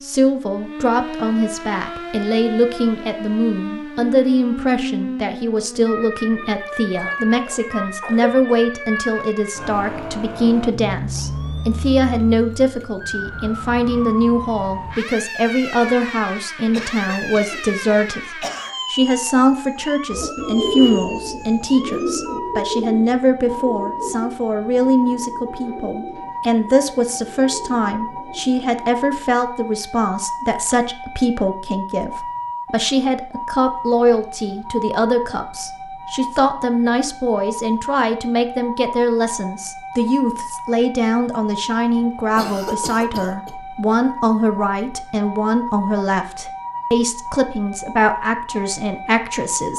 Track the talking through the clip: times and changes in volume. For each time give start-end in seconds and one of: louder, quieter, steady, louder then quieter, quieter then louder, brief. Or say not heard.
0.0-18.2 steady
18.9-49.7 steady.